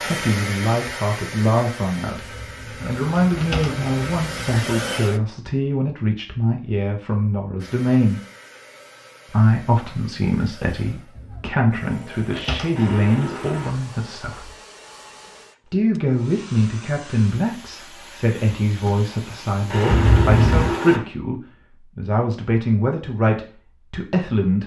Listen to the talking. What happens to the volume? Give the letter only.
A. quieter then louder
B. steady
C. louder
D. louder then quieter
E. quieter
B.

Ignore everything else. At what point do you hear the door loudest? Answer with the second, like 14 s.
20 s.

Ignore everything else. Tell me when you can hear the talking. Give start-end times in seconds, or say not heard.
0.0-8.2, 9.3-14.6, 15.7-24.6.